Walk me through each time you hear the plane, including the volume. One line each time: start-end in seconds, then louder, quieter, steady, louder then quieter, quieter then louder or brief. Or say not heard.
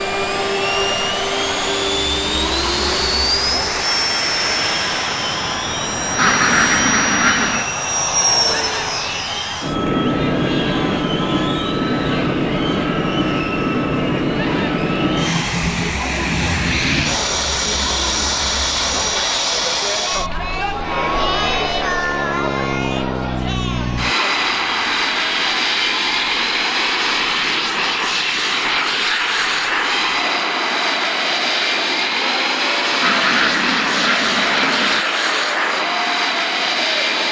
0.0-37.2 steady.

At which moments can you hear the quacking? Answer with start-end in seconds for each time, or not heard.
6.2-7.8, 33.0-35.0.